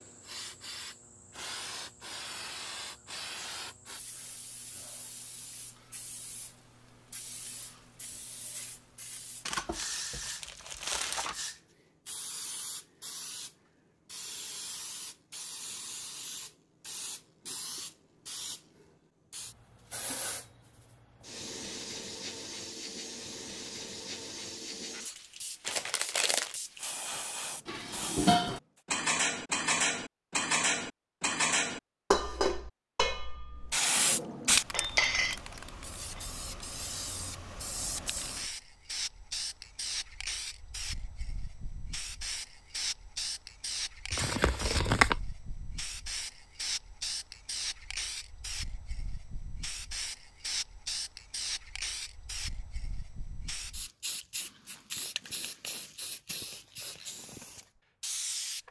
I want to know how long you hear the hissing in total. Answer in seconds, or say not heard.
53 s.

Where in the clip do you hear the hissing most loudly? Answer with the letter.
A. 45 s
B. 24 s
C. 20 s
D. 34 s
D.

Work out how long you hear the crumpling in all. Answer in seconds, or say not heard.
4 s.